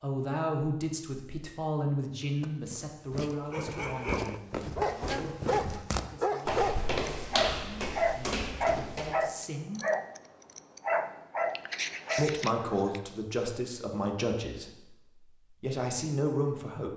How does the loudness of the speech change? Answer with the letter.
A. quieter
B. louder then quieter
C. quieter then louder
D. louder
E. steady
C.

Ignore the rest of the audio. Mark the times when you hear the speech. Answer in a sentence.
You can hear the speech from 0.0 to 9.8 s and from 12.2 to 16.9 s.